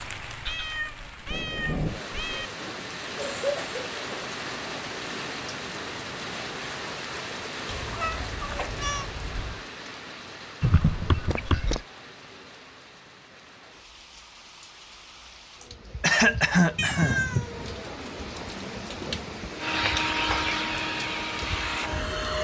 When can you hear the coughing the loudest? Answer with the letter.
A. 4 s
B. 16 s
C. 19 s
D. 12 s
B.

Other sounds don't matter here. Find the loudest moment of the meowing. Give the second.
17 s.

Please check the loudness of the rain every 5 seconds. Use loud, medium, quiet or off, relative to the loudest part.
loud, loud, medium, loud, loud.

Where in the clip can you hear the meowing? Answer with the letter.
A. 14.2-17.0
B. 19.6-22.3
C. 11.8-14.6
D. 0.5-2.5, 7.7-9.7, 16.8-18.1
D.